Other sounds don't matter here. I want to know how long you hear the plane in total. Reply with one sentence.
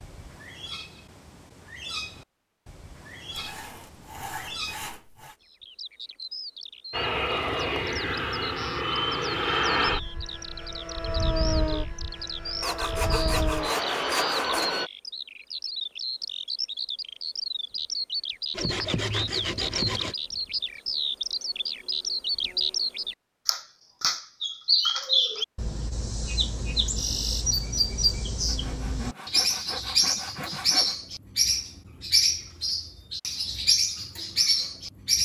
The plane can be heard for 8 seconds in total.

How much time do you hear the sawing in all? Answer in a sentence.
The sawing can be heard for 8 seconds in total.